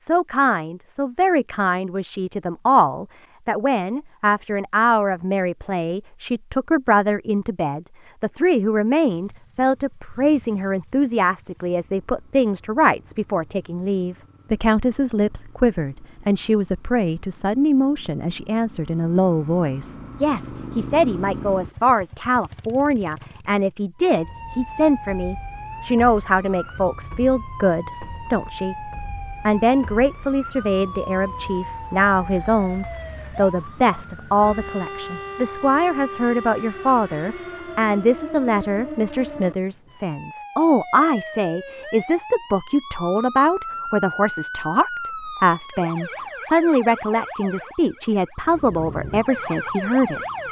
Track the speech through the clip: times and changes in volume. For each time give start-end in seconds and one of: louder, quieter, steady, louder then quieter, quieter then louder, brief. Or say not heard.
0.0-50.2 steady.